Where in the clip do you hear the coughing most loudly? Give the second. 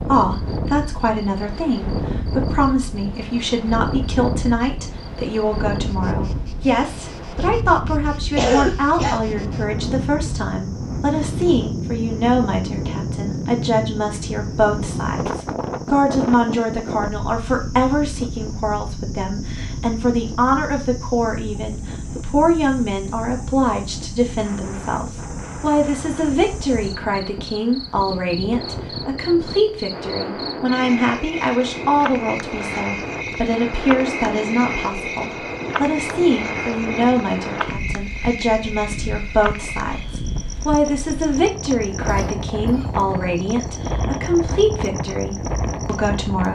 9 s.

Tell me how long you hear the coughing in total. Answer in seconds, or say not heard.
2 s.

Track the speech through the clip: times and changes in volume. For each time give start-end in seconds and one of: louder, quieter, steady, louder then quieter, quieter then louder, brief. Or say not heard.
0.1-46.5 steady.